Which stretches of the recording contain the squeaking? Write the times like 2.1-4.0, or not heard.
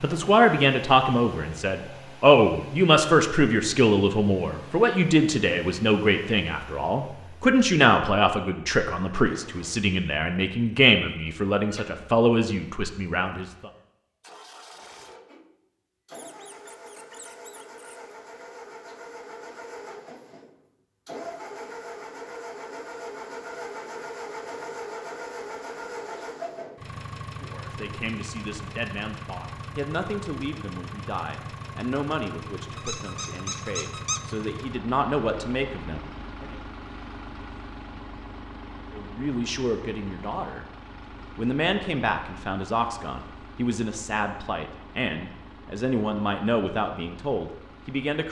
11.6-12.0, 16.1-18.1, 32.8-34.2.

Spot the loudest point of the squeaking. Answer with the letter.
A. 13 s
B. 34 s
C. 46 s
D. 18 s
B.